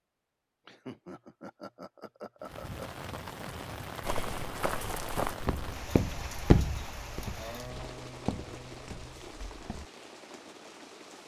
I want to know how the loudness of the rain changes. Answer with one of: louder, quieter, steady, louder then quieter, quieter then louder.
quieter.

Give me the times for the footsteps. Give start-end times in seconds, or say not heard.
4.0-9.8.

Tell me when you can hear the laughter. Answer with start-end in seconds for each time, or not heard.
0.7-3.0, 7.3-9.3.